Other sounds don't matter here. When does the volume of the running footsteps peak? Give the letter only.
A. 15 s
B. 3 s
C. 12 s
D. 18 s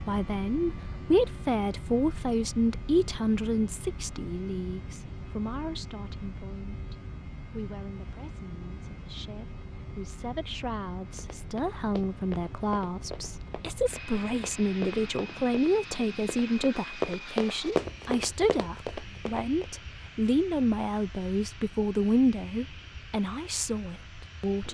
D.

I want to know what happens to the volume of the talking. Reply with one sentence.
The volume of the talking goes down, then up.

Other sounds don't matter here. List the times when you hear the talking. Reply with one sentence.
The talking can be heard from 0.1 to 24.6 s.